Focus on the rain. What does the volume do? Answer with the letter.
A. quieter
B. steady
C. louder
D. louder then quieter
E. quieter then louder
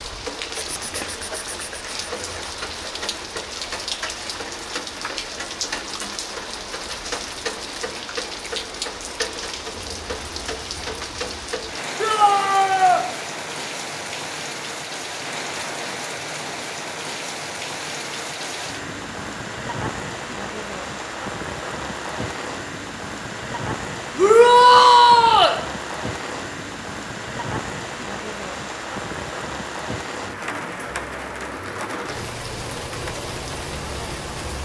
B.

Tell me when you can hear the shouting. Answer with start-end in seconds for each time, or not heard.
12.0-13.0, 24.1-25.6.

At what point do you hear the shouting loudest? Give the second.
25 s.